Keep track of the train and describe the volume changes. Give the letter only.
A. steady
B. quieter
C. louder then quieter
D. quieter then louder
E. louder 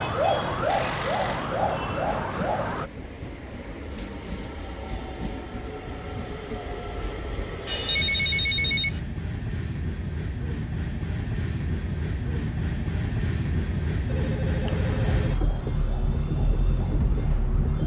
E.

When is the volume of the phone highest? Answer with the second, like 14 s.
8 s.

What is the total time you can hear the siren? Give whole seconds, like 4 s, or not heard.
6 s.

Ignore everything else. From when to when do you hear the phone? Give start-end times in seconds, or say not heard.
0.7-1.4, 7.7-9.0, 14.1-15.3.